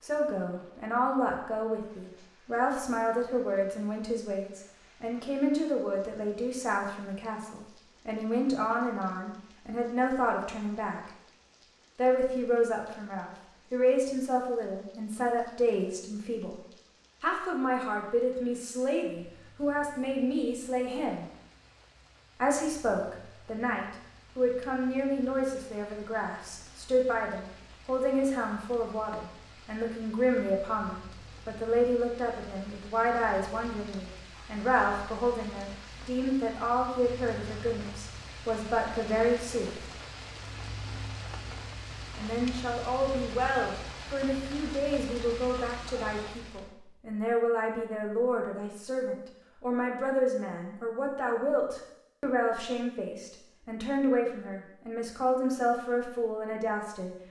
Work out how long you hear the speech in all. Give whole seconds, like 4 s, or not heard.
52 s.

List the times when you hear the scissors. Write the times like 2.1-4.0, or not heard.
not heard.